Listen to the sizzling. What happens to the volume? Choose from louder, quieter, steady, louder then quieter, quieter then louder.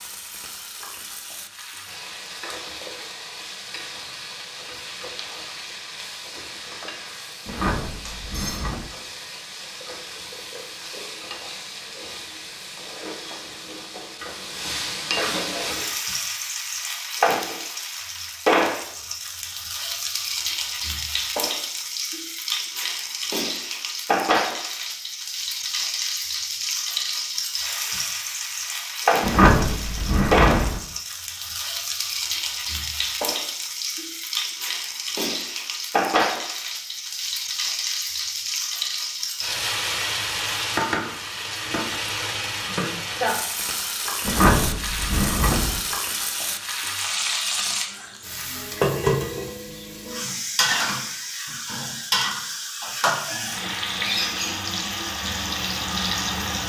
louder.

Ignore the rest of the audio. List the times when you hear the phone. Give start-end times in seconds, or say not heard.
not heard.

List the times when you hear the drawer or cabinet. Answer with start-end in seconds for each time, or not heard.
7.5-8.9, 29.2-30.8, 44.2-45.8.